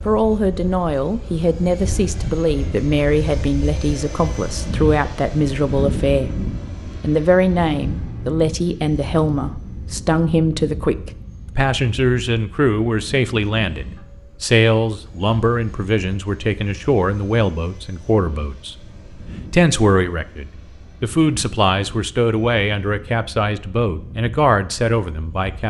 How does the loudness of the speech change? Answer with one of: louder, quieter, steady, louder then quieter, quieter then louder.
steady.